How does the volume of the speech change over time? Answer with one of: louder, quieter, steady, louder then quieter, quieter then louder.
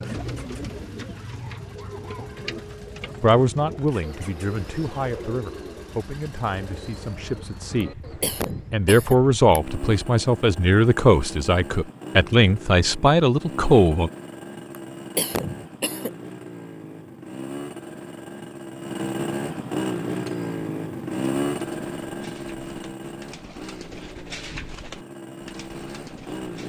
quieter then louder.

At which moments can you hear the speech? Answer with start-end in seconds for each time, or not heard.
3.2-8.0, 8.7-14.1.